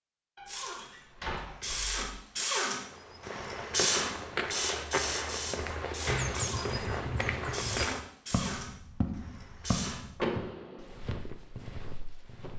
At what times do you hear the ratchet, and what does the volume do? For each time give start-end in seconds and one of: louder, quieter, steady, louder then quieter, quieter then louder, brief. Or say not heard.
0.5-10.1 quieter.